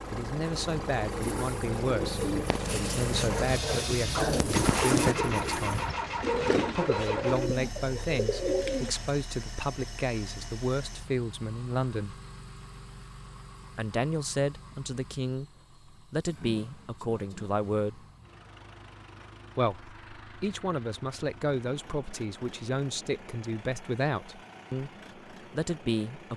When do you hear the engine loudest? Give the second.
5 s.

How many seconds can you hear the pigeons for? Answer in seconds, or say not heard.
8 s.